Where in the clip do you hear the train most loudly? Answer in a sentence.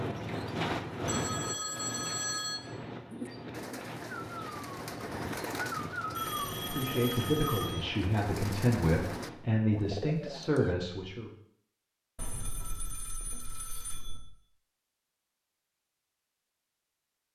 The volume of the train peaks at 1 second.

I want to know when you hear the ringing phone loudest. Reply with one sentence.
The volume of the ringing phone peaks at 2 seconds.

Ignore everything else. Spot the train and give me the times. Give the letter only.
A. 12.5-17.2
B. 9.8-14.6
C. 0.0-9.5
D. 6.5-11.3
C.